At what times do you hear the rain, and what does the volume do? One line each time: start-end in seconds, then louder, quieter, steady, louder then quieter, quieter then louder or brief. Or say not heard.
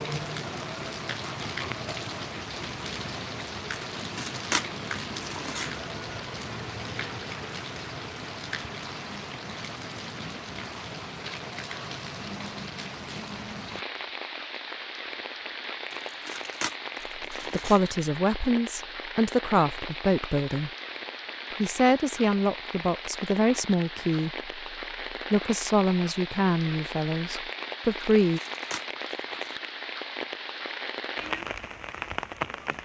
0.0-32.8 steady.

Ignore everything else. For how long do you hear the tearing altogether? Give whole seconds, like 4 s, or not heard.
5 s.